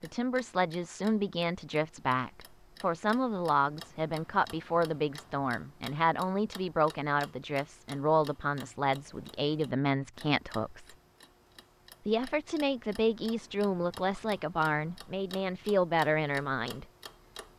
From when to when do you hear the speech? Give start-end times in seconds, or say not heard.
0.0-10.9, 12.1-16.9.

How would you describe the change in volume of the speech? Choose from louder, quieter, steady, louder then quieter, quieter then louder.
steady.